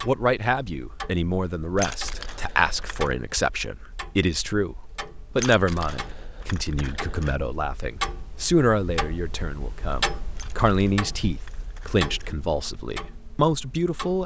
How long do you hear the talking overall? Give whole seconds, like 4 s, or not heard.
14 s.